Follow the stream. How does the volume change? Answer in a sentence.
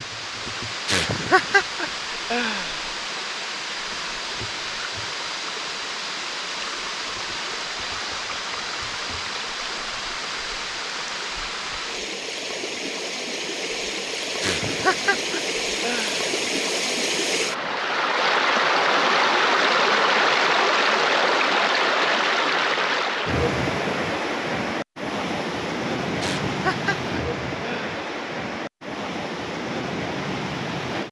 The volume of the stream goes up, then down.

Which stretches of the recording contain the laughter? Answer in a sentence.
You can hear the laughter from 0.8 to 2.9 s, from 14.4 to 16.2 s and from 26.2 to 27.9 s.